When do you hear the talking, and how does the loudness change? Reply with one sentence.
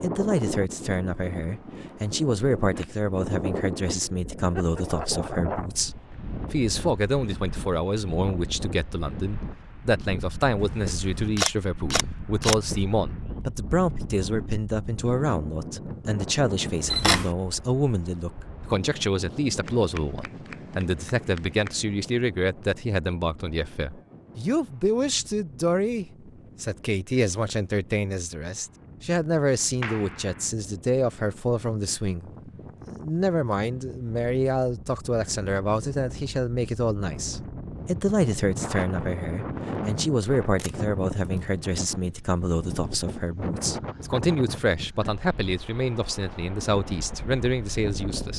You can hear the talking from 0.0 to 48.3 s, at a steady volume.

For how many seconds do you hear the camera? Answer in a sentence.
You can hear the camera for 4 seconds altogether.